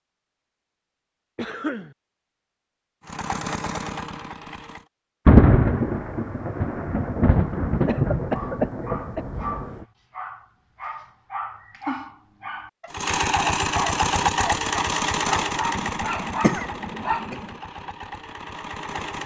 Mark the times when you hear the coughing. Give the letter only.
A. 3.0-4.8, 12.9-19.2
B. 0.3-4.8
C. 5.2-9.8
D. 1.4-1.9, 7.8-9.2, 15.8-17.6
D.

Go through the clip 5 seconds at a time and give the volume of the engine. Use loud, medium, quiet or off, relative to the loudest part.
medium, off, loud, medium.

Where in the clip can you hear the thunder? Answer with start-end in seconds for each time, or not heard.
5.2-9.8.